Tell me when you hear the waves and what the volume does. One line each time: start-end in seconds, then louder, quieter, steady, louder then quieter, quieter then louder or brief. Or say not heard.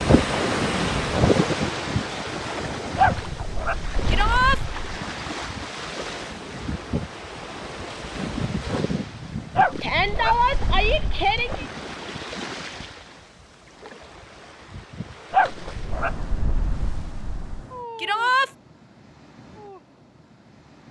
0.0-20.8 quieter.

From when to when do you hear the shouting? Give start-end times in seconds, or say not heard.
4.0-4.6, 9.8-11.7, 17.9-18.5.